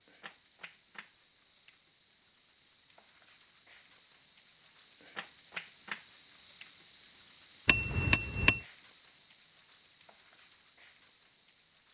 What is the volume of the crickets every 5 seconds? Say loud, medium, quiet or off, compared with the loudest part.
medium, loud, medium.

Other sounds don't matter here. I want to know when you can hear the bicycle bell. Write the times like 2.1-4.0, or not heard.
7.7-8.6.